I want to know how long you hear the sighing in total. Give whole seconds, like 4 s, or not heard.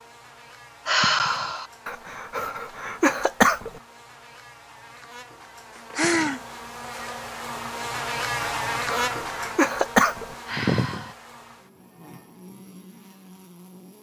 2 s.